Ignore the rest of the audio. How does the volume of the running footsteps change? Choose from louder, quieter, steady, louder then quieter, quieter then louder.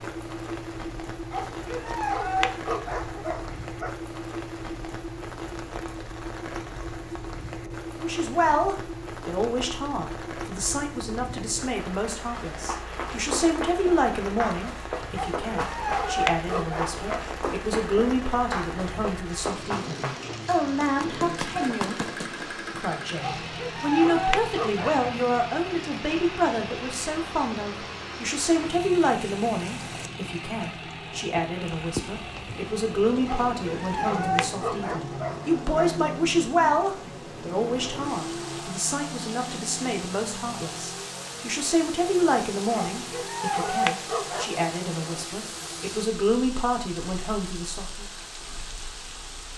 steady.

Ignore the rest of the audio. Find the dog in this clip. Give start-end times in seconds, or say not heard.
1.3-4.0, 15.2-17.2, 23.2-24.9, 33.2-36.1, 42.7-44.6.